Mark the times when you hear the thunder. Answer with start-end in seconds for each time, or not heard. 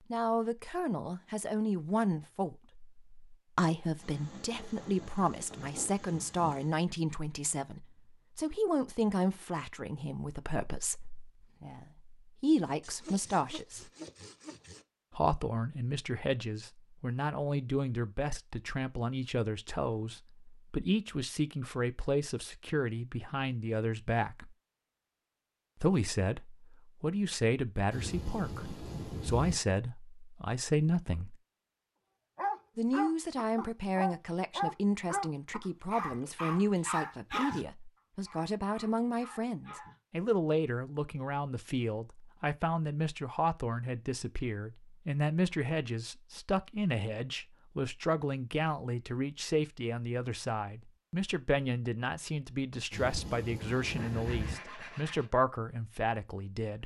4.0-6.8, 27.9-29.6, 52.9-54.5.